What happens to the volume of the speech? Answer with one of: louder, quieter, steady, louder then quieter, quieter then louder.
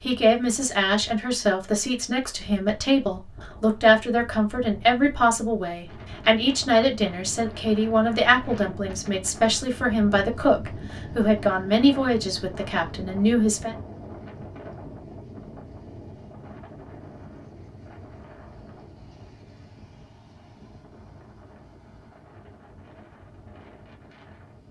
steady.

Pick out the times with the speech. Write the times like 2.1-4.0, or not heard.
0.0-13.8.